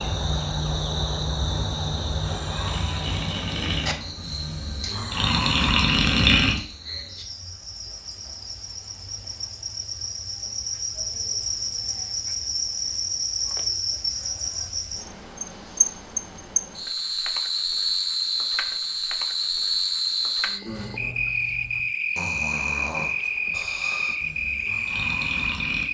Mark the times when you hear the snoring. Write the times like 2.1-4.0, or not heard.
1.4-6.6, 20.6-25.8.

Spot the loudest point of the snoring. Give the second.
6 s.